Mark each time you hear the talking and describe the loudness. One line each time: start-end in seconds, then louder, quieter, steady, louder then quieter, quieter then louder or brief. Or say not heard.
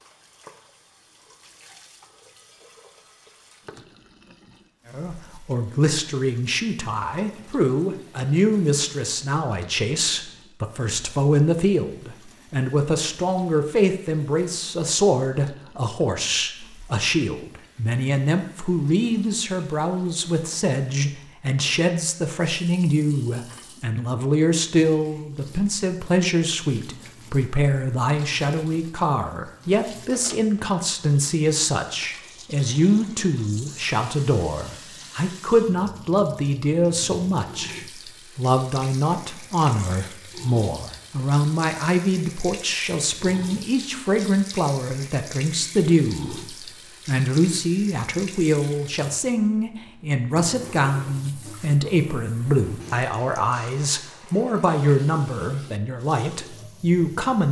4.9-57.4 steady.